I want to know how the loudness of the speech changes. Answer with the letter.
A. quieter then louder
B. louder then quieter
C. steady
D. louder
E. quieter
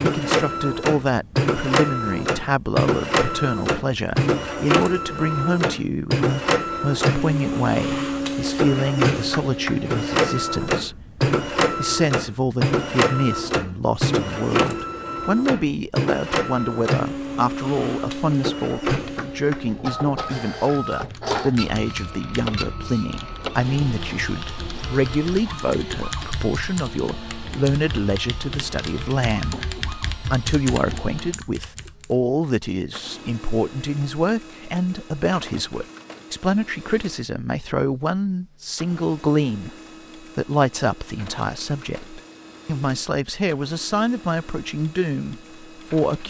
C.